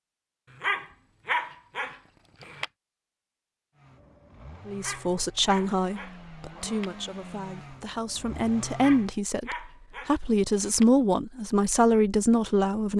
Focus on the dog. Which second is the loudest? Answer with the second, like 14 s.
1 s.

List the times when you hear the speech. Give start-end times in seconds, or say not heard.
4.7-12.9.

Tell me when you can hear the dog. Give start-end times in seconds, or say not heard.
0.5-2.7, 4.7-6.9, 8.7-10.8.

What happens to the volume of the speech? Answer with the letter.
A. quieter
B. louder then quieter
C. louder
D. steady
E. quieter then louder
E.